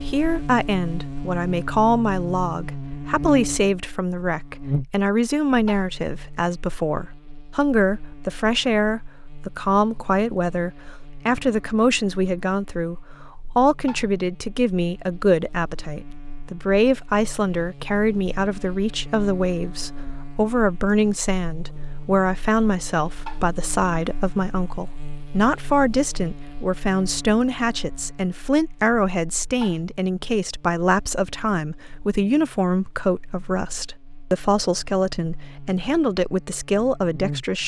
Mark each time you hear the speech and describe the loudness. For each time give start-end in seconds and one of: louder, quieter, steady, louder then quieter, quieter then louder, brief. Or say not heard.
0.0-37.6 steady.